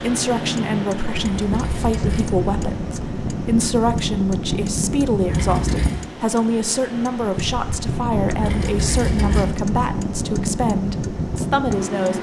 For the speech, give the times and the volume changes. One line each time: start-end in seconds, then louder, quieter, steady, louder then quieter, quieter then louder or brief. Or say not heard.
0.0-12.1 steady.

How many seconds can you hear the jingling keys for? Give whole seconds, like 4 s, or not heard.
3 s.